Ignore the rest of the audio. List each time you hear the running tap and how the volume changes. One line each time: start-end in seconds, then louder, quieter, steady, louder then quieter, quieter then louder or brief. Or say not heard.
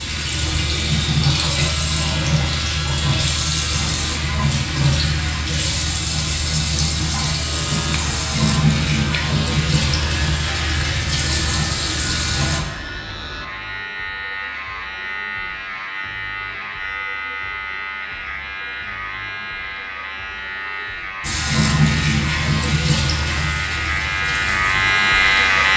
0.0-12.7 steady
21.2-25.7 quieter.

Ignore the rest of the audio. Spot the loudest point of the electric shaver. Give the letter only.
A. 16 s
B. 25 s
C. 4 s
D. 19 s
B.